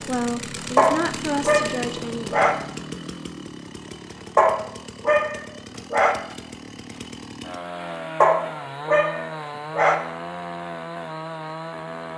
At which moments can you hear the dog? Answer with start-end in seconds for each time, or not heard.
0.8-2.5, 4.3-6.2, 8.2-9.9.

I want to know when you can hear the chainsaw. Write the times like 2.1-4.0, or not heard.
0.0-12.1.